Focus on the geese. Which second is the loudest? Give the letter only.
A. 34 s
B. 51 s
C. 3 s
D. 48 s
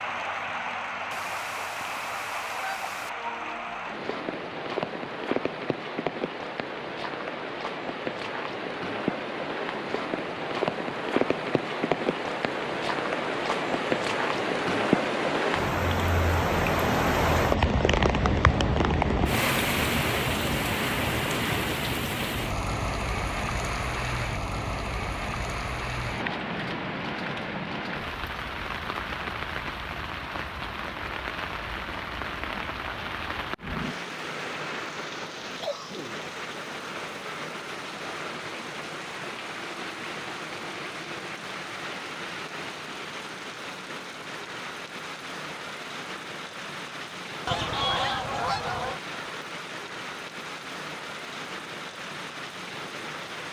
D.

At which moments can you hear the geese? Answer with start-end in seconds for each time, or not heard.
1.1-3.1, 47.5-49.0.